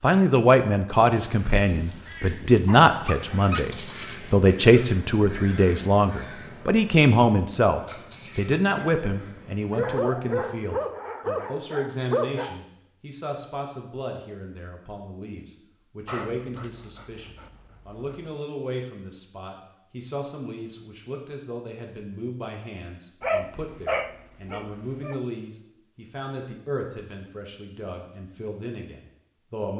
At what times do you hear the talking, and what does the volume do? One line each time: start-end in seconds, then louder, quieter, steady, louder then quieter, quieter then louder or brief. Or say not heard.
0.0-29.7 quieter.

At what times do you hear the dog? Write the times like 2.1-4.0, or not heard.
0.9-3.6, 9.7-12.6, 16.1-18.4, 23.2-25.2.